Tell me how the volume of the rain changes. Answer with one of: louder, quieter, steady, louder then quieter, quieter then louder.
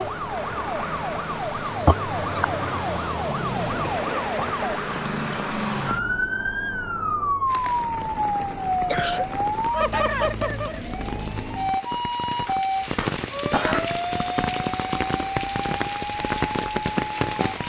louder.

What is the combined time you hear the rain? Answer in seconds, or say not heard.
10 s.